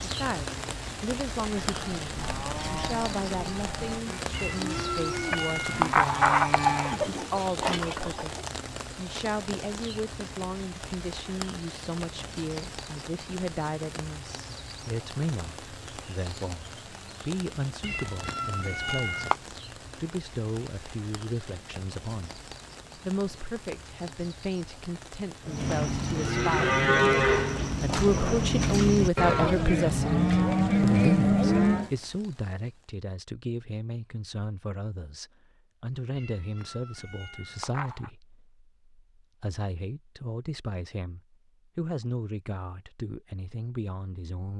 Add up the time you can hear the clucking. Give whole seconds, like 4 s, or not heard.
2 s.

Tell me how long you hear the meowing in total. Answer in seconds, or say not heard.
6 s.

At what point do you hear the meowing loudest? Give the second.
6 s.